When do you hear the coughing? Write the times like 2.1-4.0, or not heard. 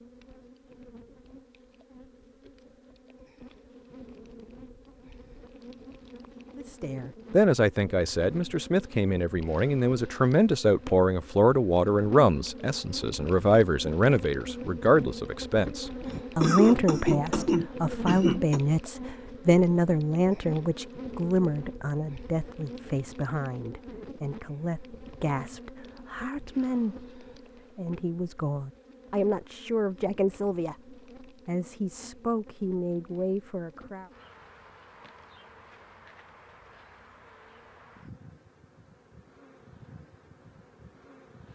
16.1-18.6.